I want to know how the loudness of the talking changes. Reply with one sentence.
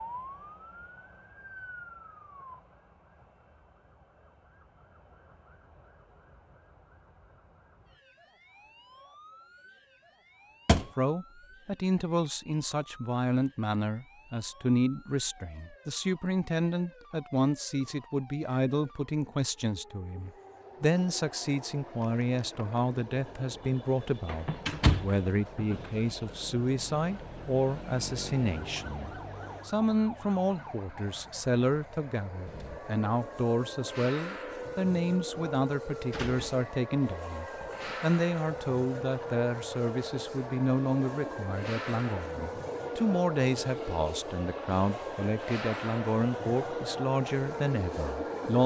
The volume of the talking stays about the same.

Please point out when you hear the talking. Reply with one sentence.
You can hear the talking from 10.9 to 48.6 s.